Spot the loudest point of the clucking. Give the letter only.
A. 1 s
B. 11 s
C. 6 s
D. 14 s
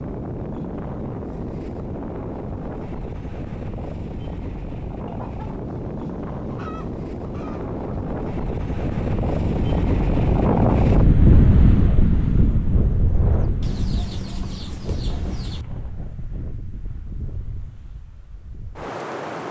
D.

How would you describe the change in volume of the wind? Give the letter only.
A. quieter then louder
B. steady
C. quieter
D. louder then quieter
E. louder
D.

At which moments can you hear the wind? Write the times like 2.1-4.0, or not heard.
0.0-19.4.